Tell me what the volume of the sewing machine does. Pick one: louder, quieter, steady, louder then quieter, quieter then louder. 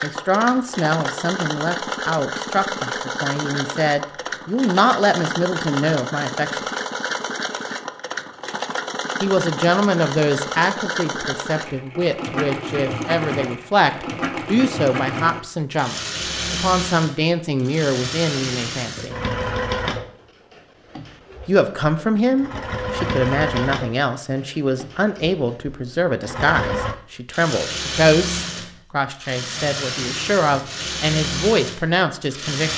steady.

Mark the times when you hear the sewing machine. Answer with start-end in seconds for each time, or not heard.
0.0-32.7.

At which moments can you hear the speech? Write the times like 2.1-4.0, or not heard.
0.0-6.6, 9.2-19.1, 21.4-32.7.